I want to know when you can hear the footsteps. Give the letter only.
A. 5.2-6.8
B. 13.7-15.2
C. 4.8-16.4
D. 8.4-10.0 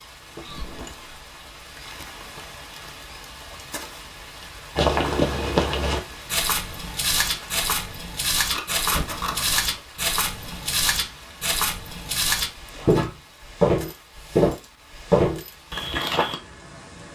C.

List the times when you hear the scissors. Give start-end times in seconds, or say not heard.
8.4-10.0.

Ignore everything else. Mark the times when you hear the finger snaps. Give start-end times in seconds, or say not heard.
not heard.